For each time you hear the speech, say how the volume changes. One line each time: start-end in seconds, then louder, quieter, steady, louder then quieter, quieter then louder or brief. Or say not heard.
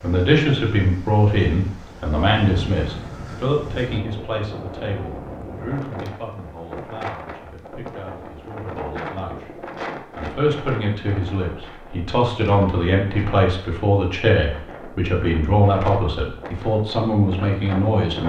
0.0-18.2 quieter then louder.